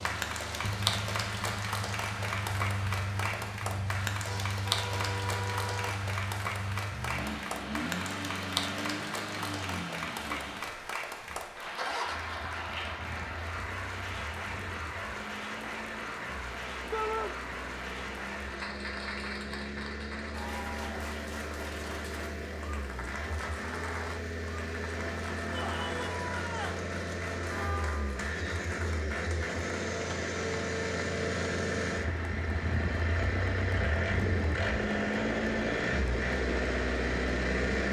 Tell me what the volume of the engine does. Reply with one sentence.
The loudness of the engine goes up.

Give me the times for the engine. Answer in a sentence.
You can hear the engine from 0.0 to 37.8 s.